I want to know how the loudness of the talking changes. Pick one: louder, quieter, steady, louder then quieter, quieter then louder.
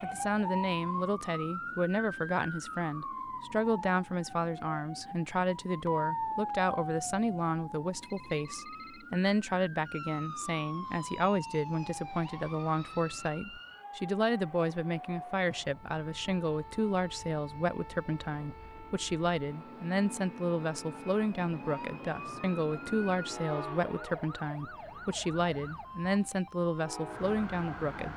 steady.